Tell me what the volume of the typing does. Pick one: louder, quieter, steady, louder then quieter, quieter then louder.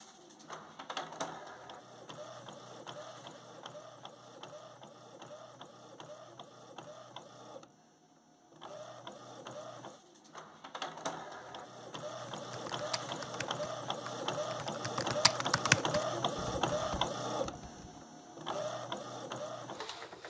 louder then quieter.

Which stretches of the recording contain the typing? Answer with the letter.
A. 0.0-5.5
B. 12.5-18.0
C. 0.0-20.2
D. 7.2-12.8
B.